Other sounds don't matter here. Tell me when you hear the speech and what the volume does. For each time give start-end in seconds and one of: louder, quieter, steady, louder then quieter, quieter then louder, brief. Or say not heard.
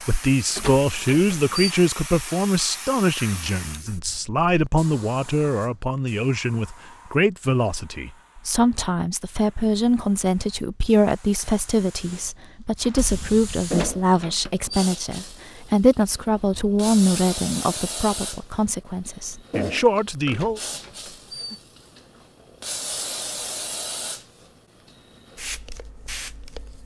0.1-20.6 steady.